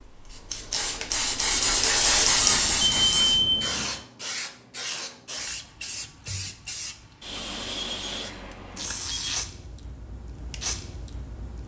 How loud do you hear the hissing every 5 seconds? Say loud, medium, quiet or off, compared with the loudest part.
loud, medium, quiet.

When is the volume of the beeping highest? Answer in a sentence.
The volume of the beeping peaks at 3 seconds.